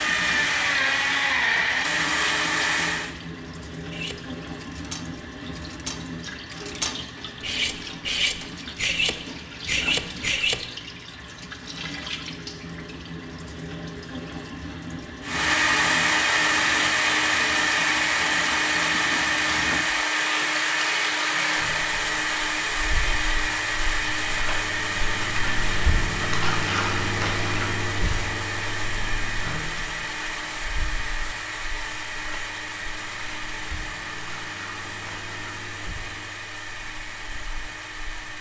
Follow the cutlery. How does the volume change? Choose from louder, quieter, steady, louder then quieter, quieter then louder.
louder.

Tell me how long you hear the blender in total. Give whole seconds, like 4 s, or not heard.
26 s.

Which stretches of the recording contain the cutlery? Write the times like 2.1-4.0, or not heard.
3.9-10.6.